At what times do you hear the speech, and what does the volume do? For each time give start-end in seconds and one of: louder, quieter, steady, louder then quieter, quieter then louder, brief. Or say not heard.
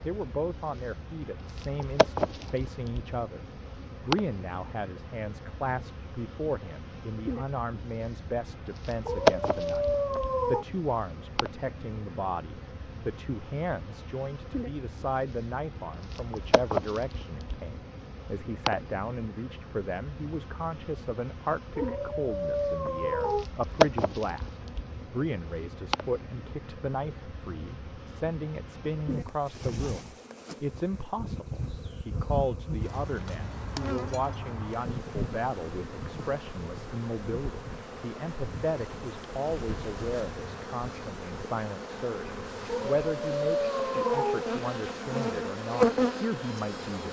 0.1-47.0 steady.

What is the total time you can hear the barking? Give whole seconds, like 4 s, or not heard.
5 s.